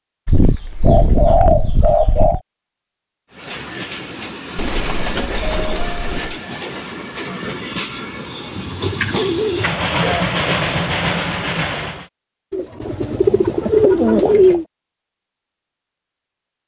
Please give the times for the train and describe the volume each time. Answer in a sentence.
The train can be heard from 3.3 to 12.1 s, getting louder.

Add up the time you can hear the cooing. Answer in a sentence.
The cooing can be heard for 8 seconds in total.